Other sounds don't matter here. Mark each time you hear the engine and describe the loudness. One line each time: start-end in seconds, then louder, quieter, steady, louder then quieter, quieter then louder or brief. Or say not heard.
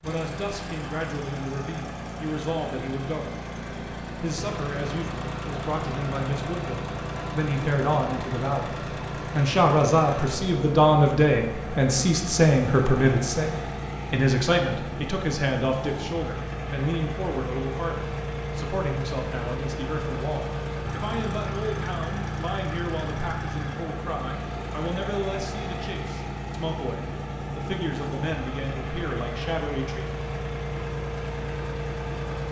0.0-32.4 steady.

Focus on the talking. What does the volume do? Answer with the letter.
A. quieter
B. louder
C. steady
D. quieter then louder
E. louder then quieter
E.